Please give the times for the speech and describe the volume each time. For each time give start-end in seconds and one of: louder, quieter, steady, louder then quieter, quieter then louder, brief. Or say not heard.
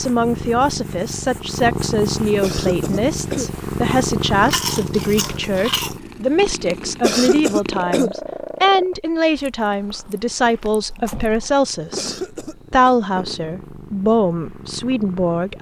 0.0-15.5 steady.